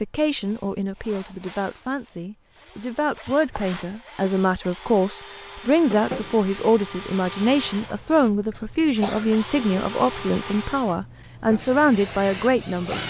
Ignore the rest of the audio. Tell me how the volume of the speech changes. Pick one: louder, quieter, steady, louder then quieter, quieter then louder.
louder.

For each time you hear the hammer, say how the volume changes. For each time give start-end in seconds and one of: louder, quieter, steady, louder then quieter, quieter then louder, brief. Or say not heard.
not heard.